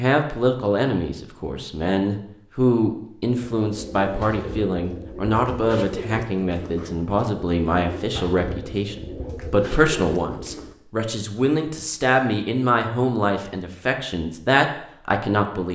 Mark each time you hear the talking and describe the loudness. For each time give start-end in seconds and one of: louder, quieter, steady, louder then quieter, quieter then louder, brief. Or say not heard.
0.0-15.6 steady.